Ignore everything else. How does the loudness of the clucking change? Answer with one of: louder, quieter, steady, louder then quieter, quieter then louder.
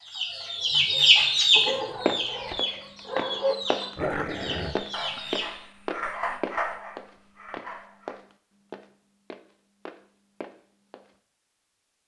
quieter.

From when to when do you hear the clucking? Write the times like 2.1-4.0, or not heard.
0.0-5.6.